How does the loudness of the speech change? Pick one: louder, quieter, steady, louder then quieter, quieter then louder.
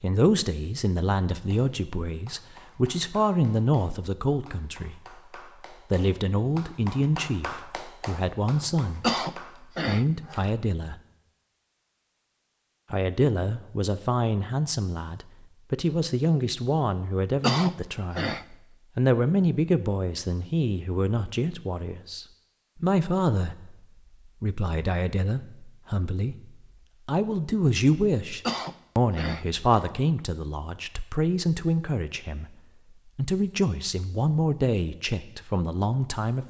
steady.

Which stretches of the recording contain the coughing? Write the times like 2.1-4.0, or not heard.
9.0-10.5, 17.4-18.4, 28.4-29.9.